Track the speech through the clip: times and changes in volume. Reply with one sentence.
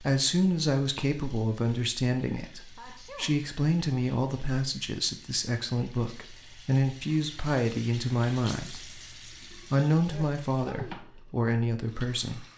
The speech can be heard from 0.0 to 12.5 s, at a steady volume.